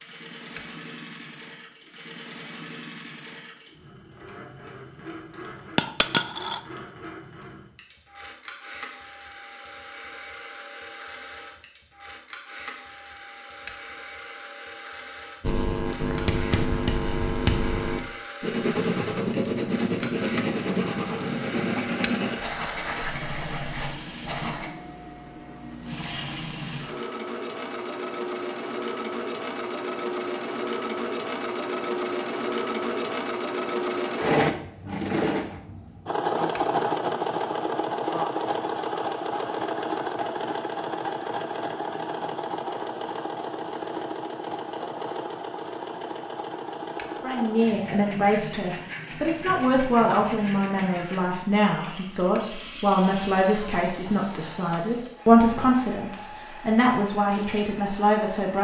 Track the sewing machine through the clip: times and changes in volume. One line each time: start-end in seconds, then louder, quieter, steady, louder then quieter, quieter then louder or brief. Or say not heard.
0.0-58.5 louder then quieter.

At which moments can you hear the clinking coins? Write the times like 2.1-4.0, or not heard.
5.8-6.6.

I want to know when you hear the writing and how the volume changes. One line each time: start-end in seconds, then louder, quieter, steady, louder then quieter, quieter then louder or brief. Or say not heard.
15.4-24.7 quieter.